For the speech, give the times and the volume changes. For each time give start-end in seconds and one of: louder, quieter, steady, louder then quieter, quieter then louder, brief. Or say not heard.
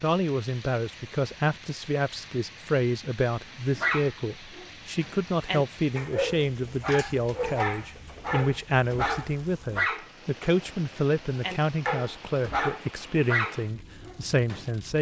0.0-14.9 steady.